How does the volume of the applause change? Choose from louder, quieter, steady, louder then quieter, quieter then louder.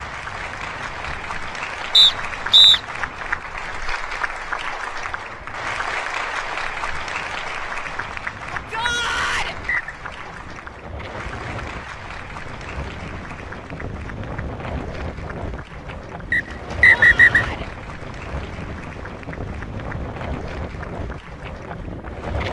quieter.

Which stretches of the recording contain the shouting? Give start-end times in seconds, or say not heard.
8.5-9.6, 16.8-17.7.